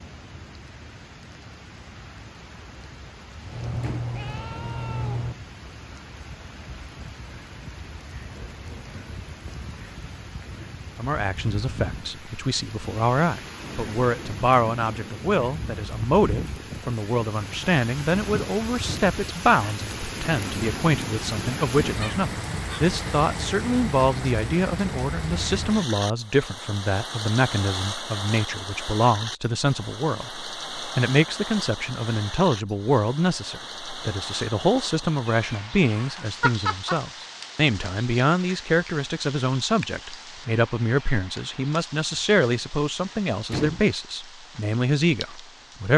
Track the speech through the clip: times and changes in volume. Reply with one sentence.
The speech can be heard from 10.9 to 45.9 s, at a steady volume.